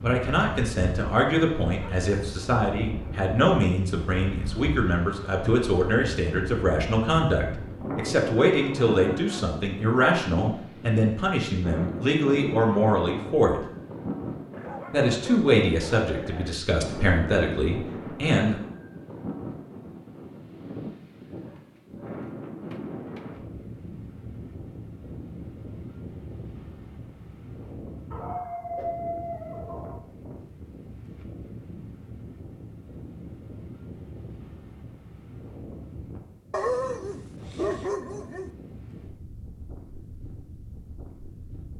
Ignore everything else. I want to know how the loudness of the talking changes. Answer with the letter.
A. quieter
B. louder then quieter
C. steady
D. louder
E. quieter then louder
C.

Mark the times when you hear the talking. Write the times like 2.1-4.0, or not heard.
0.0-13.6, 14.9-18.6.